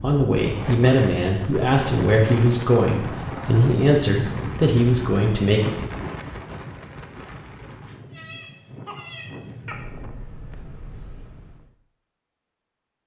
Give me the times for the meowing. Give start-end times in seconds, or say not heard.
8.0-9.8.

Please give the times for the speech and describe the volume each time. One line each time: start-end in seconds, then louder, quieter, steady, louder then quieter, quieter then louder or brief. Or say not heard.
0.0-5.8 steady.